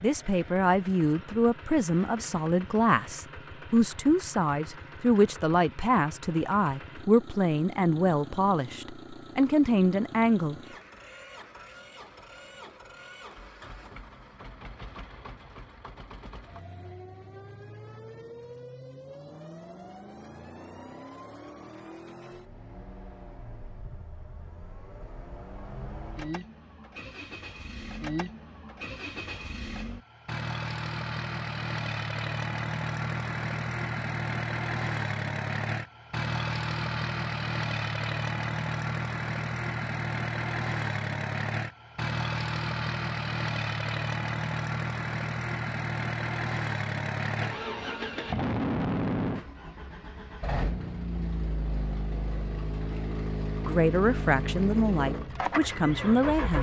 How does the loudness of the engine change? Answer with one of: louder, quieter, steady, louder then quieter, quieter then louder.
louder.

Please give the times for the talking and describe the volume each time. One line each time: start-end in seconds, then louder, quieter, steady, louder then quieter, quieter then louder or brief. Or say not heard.
0.0-10.6 steady
53.6-56.5 brief.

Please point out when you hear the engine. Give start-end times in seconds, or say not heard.
0.0-56.5.